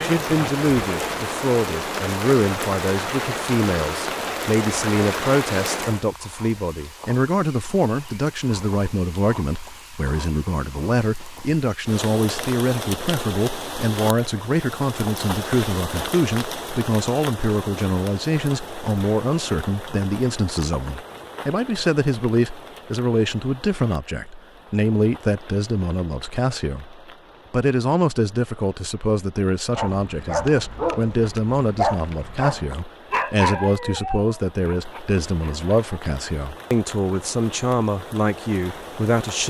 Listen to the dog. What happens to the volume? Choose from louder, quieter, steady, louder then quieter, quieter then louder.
quieter.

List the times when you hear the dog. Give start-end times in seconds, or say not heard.
29.7-36.0.